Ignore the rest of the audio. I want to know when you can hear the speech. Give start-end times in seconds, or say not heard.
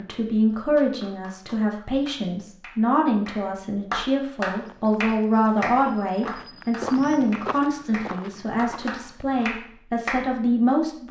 0.0-11.0.